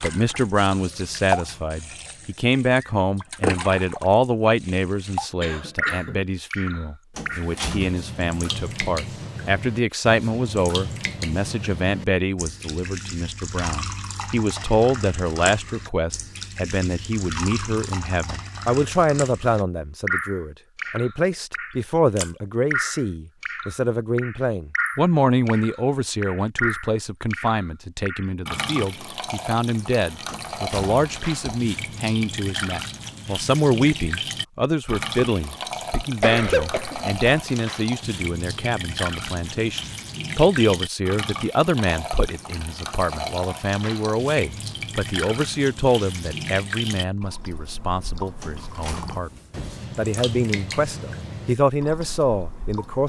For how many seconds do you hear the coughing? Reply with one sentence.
You can hear the coughing for 2 seconds altogether.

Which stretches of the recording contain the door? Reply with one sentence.
The door can be heard from 7.2 to 8.0 s, from 30.2 to 31.6 s and from 48.4 to 49.9 s.